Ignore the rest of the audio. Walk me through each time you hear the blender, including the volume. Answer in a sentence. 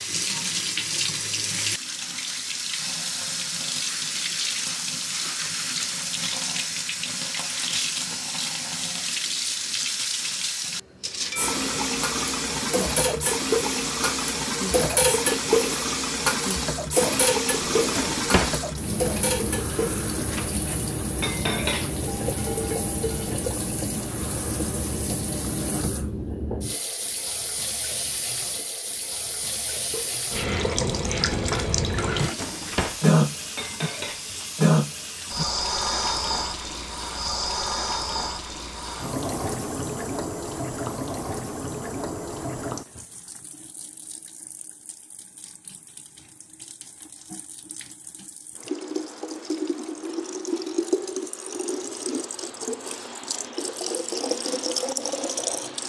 The blender can't be heard in this clip.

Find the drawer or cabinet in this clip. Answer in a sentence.
The drawer or cabinet can be heard from 17.6 to 18.6 s and from 32.1 to 33.0 s.